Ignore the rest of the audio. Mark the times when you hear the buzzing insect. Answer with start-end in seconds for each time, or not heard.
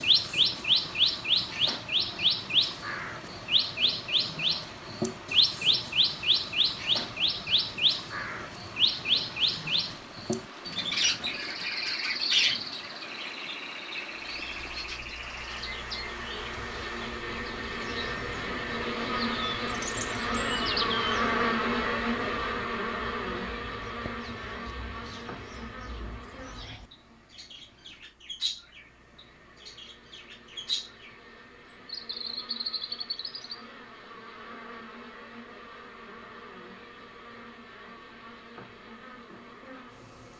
14.3-40.3.